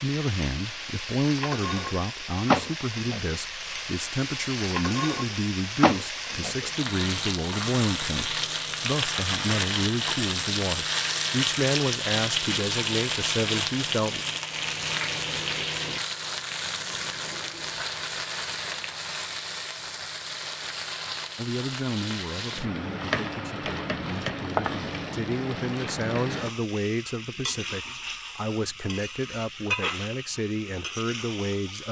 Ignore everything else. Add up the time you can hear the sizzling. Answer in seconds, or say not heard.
32 s.